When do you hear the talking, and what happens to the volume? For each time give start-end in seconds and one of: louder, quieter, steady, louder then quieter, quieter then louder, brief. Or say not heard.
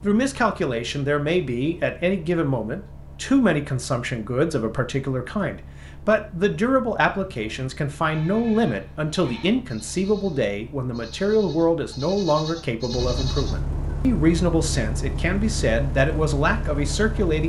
0.0-17.4 steady.